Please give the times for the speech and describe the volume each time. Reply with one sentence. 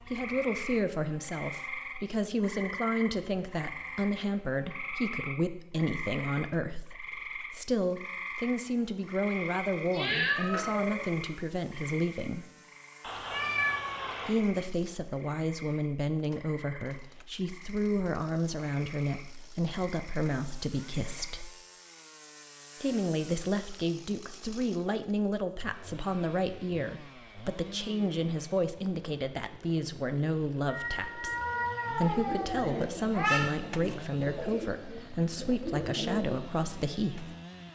You can hear the speech from 0.1 to 12.4 s, at a steady volume; from 14.2 to 21.5 s, at a steady volume; and from 22.8 to 37.4 s, at a steady volume.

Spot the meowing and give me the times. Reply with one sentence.
You can hear the meowing from 9.8 to 10.9 s, from 13.0 to 14.3 s and from 30.6 to 33.4 s.